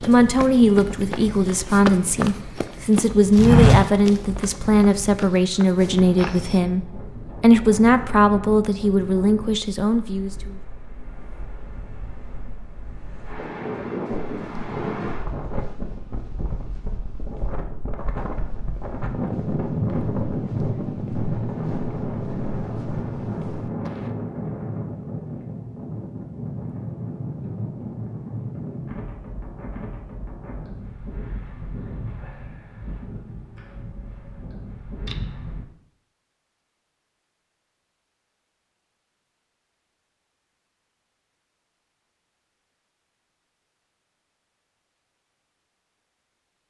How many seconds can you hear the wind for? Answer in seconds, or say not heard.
36 s.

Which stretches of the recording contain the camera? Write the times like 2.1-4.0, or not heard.
35.0-35.6.